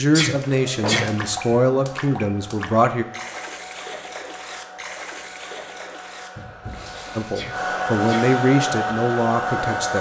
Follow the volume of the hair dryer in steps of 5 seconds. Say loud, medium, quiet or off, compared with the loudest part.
quiet, loud.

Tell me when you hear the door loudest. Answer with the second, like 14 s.
1 s.